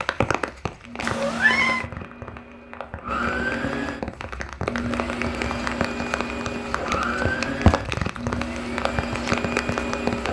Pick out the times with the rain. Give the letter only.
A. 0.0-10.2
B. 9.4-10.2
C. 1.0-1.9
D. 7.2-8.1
A.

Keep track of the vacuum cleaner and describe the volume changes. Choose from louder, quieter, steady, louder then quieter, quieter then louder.
louder.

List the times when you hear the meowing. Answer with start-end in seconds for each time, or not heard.
1.0-1.9.